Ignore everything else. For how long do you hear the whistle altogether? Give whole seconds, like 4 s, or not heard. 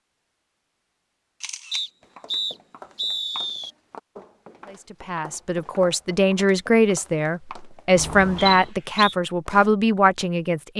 3 s.